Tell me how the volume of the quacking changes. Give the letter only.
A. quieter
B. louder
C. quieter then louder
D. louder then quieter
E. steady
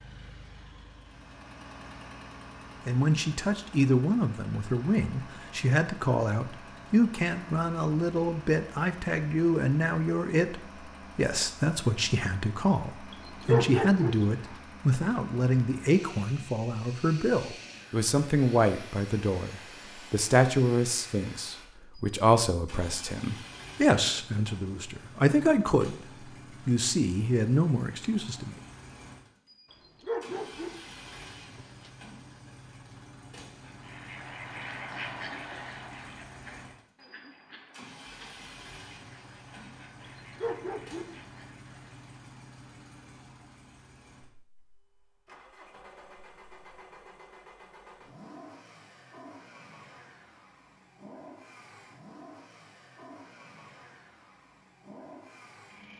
A.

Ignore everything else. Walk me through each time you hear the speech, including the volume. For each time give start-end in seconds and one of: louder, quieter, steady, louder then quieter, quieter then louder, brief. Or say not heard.
2.9-25.9 steady
26.6-28.6 brief.